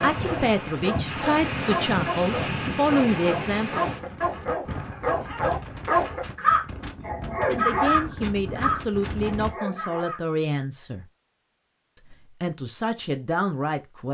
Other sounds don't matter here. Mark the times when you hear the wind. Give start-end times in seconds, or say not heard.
0.0-9.5.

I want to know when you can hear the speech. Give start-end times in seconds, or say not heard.
0.0-3.9, 7.5-11.1, 11.9-14.1.